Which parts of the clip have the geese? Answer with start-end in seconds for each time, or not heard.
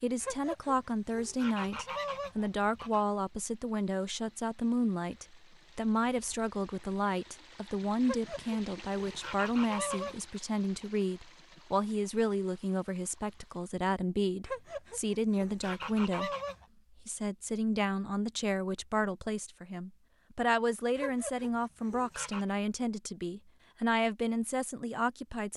0.2-3.0, 8.0-10.2, 14.4-16.6, 20.9-22.4.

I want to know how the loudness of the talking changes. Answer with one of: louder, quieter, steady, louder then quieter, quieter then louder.
steady.